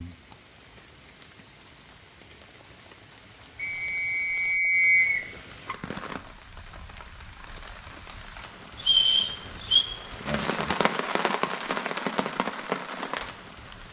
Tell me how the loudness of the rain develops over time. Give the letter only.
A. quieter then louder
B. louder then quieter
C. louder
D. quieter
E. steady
C.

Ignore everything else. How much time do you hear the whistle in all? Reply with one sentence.
You can hear the whistle for 3 seconds altogether.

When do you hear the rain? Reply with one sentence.
The rain can be heard from 0.0 to 13.8 s.